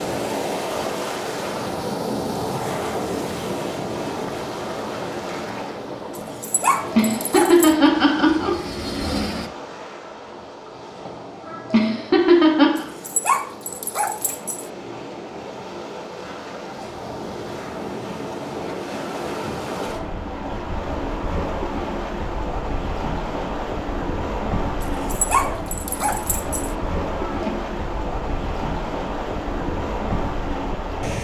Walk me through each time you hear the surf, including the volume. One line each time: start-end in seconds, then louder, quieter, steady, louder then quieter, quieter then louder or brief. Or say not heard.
0.0-31.1 quieter then louder.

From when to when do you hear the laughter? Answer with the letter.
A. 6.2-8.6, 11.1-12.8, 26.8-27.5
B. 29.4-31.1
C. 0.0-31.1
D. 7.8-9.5
A.